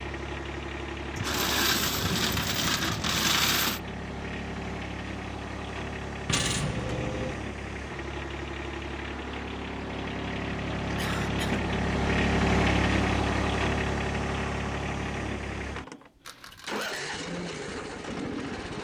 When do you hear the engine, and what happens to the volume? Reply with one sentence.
The engine can be heard from 0.0 to 18.7 s, getting louder then quieter.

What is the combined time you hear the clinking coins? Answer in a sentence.
The clinking coins can be heard for 4 seconds in total.